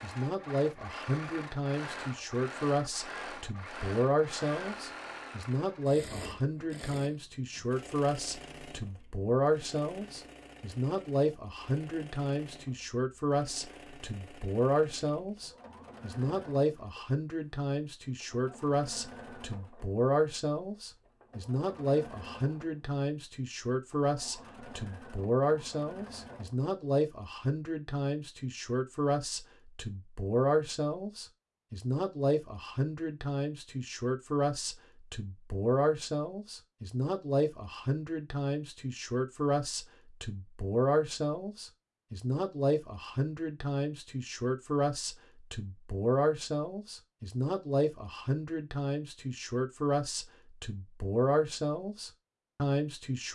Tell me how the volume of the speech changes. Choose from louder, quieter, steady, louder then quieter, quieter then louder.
steady.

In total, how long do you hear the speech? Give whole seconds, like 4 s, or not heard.
53 s.